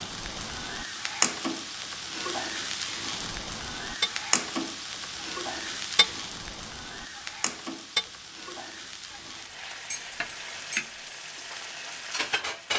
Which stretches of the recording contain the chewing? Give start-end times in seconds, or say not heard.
not heard.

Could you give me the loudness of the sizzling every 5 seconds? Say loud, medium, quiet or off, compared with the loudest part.
loud, medium, loud.